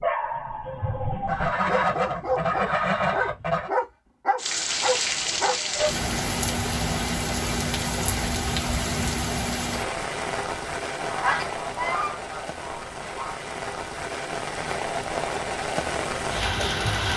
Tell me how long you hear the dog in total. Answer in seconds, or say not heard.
6 s.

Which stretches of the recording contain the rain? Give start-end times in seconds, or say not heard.
4.3-17.1.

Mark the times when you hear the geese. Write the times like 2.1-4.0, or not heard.
1.2-3.7, 10.9-13.4.